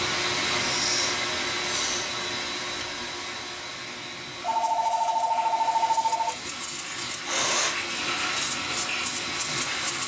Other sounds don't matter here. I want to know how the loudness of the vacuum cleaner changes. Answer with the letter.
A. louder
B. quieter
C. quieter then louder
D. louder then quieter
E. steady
C.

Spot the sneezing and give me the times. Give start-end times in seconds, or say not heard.
0.6-2.1, 7.1-7.8.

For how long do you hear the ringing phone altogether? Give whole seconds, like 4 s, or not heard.
2 s.